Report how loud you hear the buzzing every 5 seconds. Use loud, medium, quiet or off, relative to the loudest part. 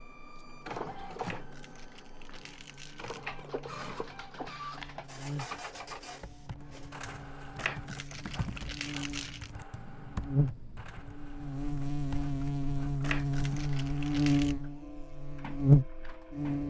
quiet, quiet, medium, loud.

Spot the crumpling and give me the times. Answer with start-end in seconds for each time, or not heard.
1.2-3.2, 7.5-9.5, 13.0-14.6.